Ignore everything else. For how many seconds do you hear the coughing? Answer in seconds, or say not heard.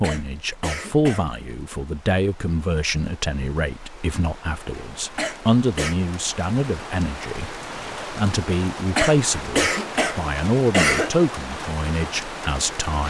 4 s.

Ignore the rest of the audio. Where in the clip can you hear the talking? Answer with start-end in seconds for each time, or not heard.
0.0-13.0.